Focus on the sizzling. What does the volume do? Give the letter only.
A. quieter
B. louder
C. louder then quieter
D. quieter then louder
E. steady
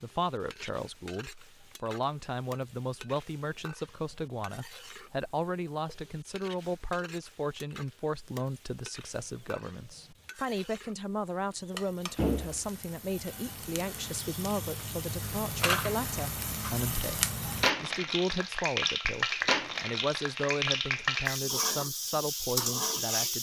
B.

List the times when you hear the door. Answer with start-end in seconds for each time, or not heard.
12.2-12.7.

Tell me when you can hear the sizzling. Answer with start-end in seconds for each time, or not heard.
0.0-23.3.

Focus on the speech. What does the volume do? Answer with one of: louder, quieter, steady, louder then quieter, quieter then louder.
steady.